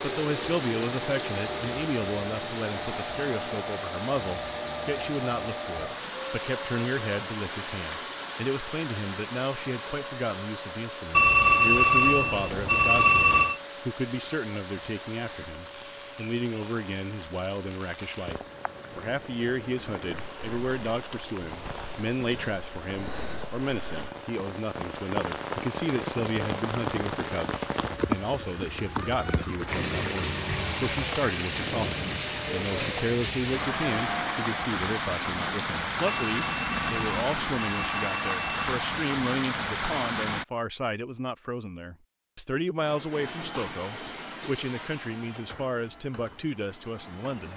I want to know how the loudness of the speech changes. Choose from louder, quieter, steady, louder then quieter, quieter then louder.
steady.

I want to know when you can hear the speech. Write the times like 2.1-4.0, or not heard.
0.0-47.5.